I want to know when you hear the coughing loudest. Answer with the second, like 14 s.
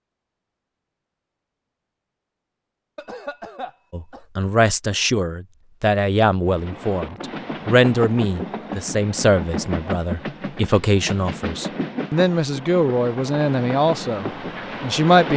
3 s.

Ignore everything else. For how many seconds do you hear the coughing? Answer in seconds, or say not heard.
2 s.